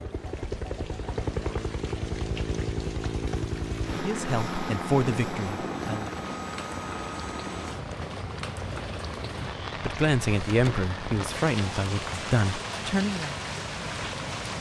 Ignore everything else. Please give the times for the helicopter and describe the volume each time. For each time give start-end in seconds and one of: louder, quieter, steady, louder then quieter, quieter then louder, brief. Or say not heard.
0.0-14.5 quieter.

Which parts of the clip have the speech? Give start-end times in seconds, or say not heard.
3.9-6.1, 9.8-13.3.